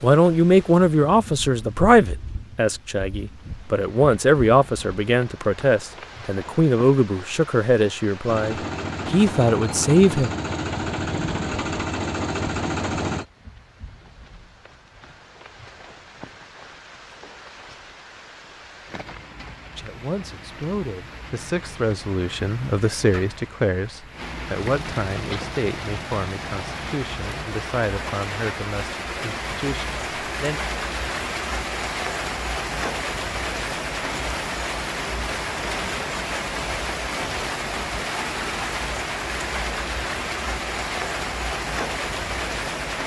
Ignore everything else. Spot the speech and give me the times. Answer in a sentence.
You can hear the speech from 0.0 to 10.3 s and from 19.8 to 30.6 s.